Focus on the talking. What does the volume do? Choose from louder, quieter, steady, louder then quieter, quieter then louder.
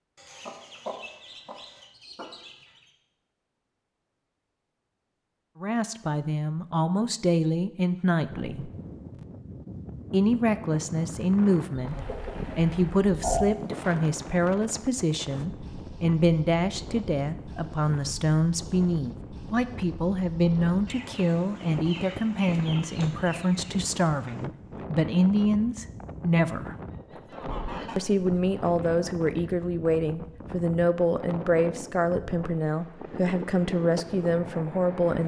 steady.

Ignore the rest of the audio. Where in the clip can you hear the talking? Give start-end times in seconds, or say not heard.
5.6-8.7, 10.1-26.8, 27.9-35.2.